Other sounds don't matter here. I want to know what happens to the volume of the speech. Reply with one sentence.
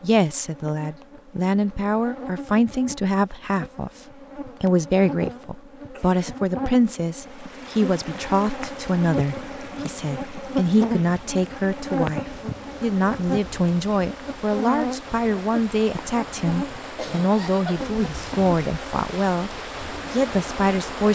The volume of the speech stays about the same.